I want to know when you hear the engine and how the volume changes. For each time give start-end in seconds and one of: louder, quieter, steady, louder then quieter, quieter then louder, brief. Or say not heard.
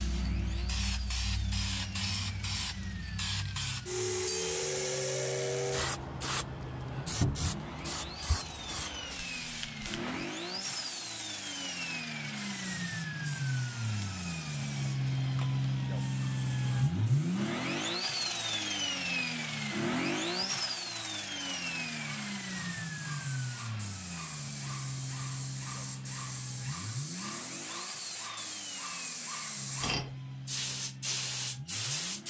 0.0-32.2 louder then quieter.